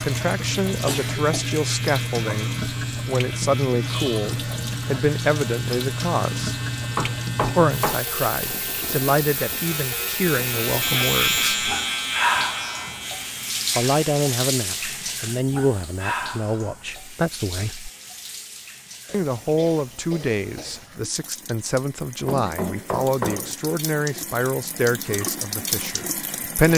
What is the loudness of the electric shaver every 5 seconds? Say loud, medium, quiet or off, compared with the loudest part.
medium, medium, loud, off, off, off.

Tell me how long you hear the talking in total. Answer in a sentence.
The talking can be heard for 22 seconds in total.